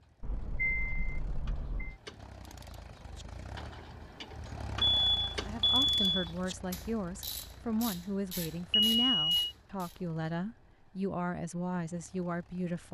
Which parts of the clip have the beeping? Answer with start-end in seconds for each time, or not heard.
0.2-1.9, 4.8-6.3, 8.7-9.3.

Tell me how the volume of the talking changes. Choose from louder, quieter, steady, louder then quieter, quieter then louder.
steady.